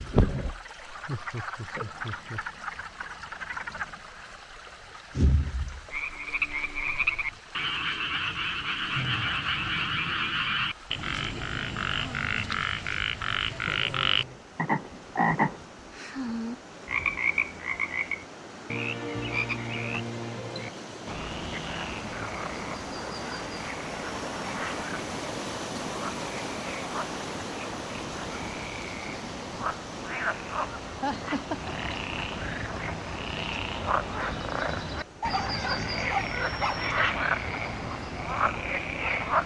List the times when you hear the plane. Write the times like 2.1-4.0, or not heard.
not heard.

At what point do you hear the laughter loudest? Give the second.
31 s.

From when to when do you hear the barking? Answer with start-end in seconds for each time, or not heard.
35.2-36.8.